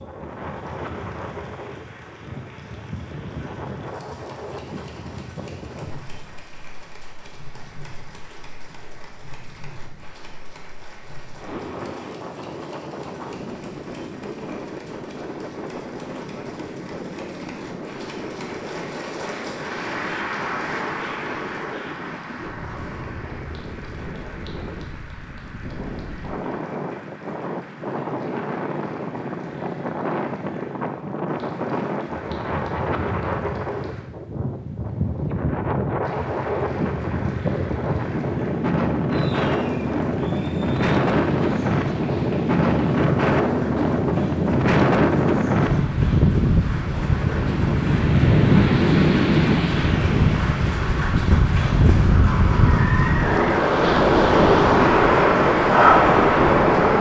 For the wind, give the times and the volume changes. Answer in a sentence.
The wind can be heard from 0.0 to 56.9 s, getting louder.